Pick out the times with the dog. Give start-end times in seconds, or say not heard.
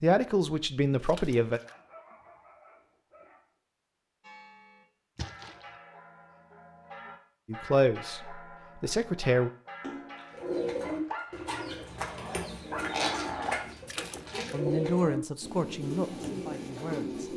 1.6-3.5, 10.8-13.7.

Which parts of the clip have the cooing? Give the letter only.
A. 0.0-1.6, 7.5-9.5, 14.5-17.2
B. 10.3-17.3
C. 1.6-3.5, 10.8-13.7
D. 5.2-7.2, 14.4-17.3
B.